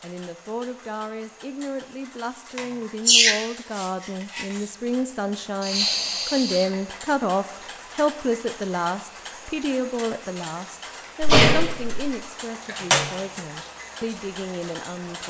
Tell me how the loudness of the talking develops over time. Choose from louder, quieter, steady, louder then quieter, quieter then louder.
louder then quieter.